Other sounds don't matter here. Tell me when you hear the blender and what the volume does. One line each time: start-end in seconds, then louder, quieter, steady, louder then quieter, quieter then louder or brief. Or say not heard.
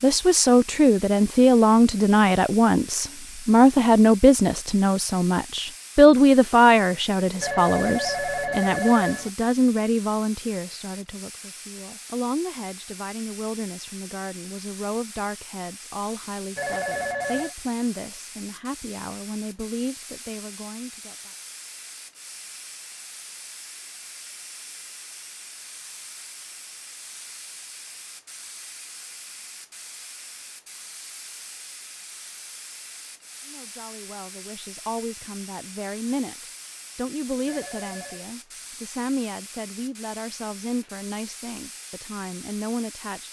not heard.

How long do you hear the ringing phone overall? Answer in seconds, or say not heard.
4 s.